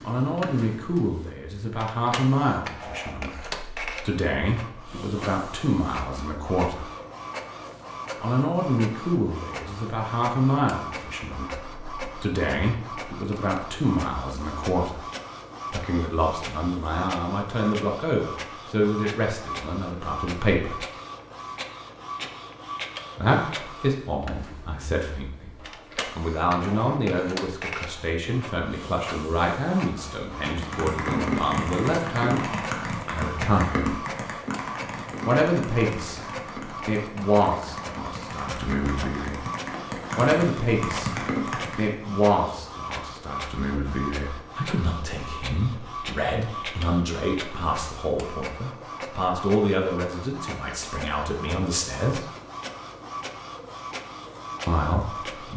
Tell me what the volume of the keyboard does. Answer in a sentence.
The loudness of the keyboard goes down, then up.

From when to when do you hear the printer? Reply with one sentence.
You can hear the printer from 0.0 to 55.5 s.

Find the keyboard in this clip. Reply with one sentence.
The keyboard can be heard from 30.4 to 42.0 s.